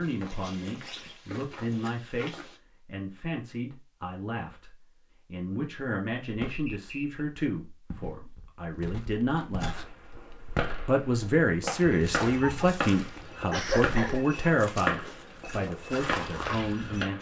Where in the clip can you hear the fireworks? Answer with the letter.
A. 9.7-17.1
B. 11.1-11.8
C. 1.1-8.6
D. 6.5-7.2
A.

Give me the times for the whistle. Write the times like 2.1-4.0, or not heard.
6.5-7.2.